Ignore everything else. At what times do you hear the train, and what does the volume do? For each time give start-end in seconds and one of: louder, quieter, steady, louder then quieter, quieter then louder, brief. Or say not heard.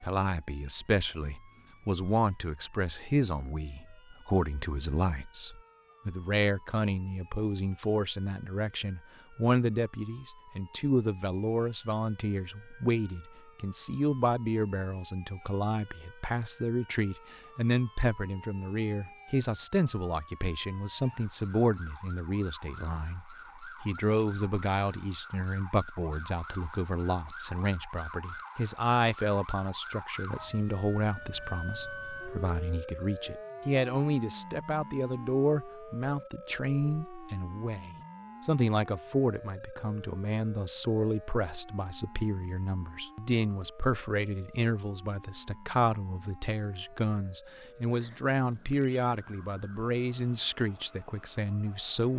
not heard.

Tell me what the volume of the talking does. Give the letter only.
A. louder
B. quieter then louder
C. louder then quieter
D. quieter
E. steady
E.